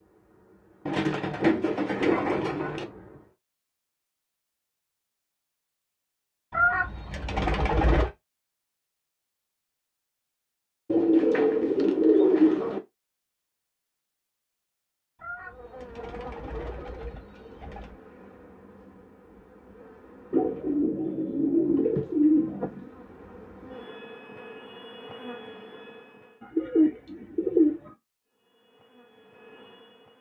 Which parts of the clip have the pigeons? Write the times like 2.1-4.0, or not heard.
0.8-2.9, 6.5-8.1, 10.8-12.8, 15.2-18.0, 20.3-22.9, 26.4-27.9.